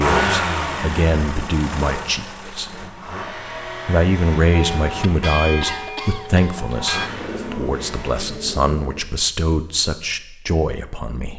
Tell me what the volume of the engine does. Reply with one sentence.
The loudness of the engine goes down, then up.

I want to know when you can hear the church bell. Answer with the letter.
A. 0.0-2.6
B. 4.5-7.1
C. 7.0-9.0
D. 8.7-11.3
B.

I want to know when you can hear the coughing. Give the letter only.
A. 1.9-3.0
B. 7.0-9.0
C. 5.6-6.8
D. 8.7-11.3
C.